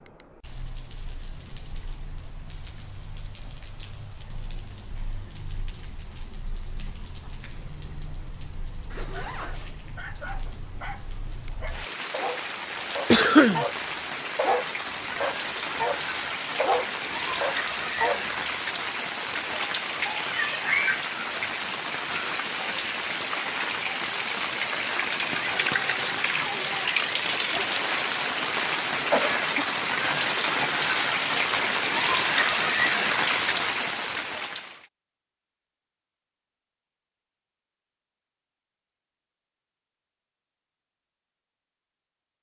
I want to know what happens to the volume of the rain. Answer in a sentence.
The loudness of the rain goes up.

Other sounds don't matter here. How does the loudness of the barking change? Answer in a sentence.
The volume of the barking goes up.